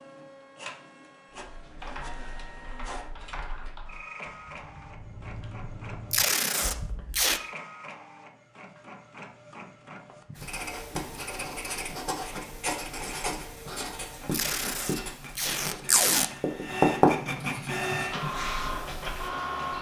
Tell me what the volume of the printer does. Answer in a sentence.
The loudness of the printer goes up.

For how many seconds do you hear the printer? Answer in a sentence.
You can hear the printer for 20 seconds altogether.